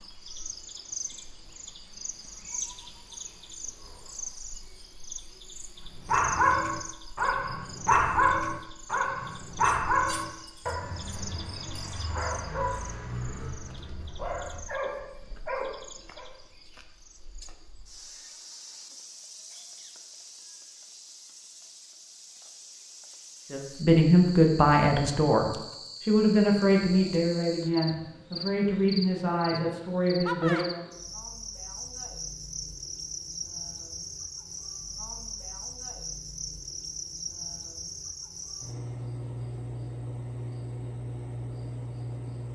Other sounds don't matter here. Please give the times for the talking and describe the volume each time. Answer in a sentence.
The talking can be heard from 23.5 to 30.8 s, getting quieter.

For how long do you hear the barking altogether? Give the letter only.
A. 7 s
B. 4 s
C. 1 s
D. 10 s
D.